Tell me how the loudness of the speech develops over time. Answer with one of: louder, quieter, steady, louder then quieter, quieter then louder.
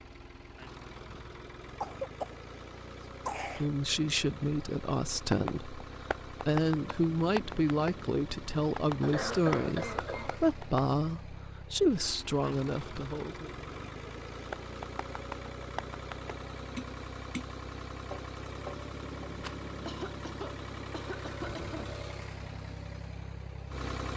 steady.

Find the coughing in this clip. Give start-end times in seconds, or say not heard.
1.8-3.7, 9.0-10.7, 19.9-21.9.